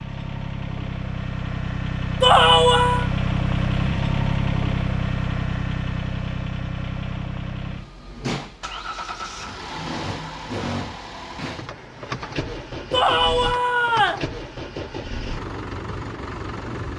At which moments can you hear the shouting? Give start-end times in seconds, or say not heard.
2.2-3.1, 12.9-14.2.